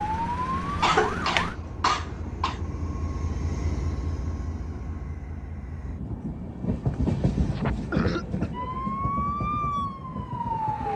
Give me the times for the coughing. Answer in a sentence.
You can hear the coughing from 0.8 to 2.6 s and from 7.0 to 8.5 s.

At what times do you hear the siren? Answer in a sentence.
You can hear the siren from 0.0 to 1.6 s and from 8.5 to 10.9 s.